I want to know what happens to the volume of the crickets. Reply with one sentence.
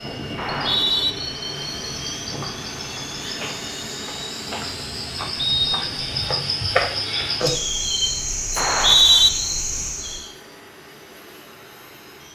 The volume of the crickets goes up.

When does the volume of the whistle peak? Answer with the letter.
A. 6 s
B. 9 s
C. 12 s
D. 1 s
B.